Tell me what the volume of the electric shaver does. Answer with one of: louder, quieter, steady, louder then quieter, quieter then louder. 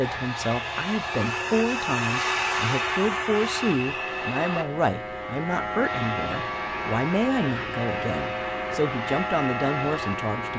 louder.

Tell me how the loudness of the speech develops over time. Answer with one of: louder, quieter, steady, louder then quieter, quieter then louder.
steady.